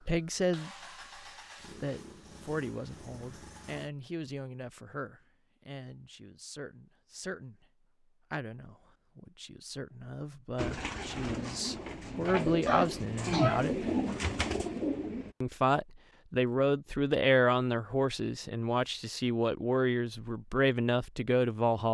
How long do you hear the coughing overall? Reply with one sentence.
The coughing can be heard for 2 seconds in total.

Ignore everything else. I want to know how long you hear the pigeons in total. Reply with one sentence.
The pigeons can be heard for 5 seconds in total.